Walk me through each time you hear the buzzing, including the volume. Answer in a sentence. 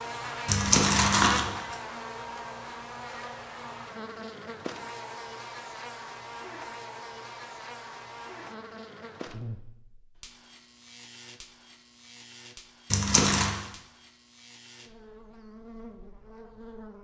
You can hear the buzzing from 0.0 to 16.9 s, getting quieter.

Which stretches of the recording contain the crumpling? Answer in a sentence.
The crumpling can be heard from 0.5 to 1.4 s and from 12.9 to 13.5 s.